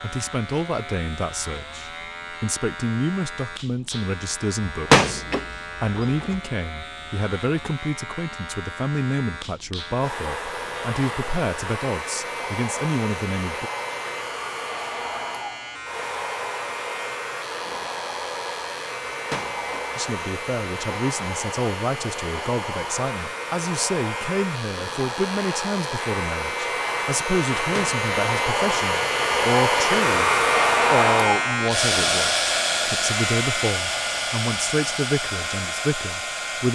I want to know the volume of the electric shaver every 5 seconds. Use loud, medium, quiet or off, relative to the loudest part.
medium, medium, medium, medium, medium, loud, loud, medium.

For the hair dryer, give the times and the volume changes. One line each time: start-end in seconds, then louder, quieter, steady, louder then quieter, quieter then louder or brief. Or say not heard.
9.9-36.7 louder.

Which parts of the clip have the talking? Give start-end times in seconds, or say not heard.
0.0-13.7, 19.9-30.3, 30.9-36.7.